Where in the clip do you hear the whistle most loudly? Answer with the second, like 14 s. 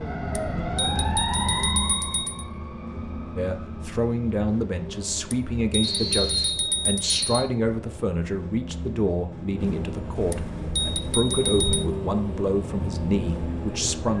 6 s.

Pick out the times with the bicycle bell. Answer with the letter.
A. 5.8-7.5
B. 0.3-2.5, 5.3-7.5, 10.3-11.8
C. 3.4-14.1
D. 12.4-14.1
B.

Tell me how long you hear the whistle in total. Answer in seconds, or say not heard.
2 s.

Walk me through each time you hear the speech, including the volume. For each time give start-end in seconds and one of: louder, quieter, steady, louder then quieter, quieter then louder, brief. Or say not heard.
3.4-14.1 steady.